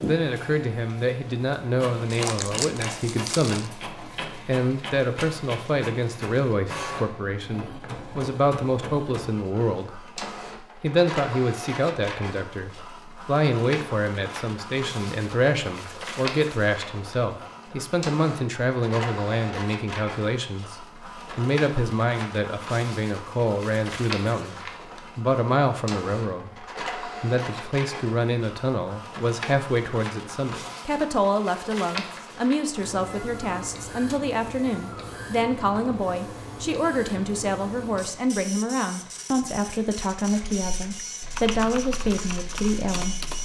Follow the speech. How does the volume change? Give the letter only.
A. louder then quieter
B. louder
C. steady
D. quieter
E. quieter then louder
C.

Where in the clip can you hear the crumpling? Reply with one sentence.
You can hear the crumpling from 2.1 to 3.7 s.